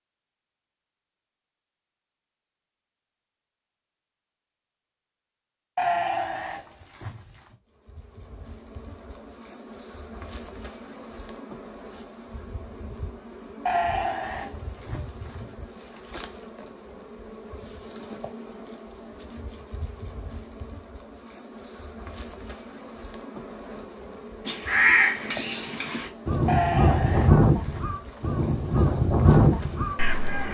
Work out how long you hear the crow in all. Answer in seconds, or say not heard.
6 s.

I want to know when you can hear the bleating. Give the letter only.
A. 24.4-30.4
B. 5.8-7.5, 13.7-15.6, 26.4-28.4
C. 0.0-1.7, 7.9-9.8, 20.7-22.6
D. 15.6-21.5
B.